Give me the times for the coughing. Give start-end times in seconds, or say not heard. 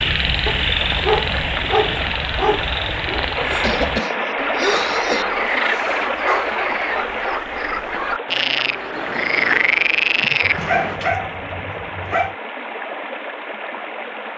3.6-5.2.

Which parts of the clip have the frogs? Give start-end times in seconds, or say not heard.
0.0-11.0.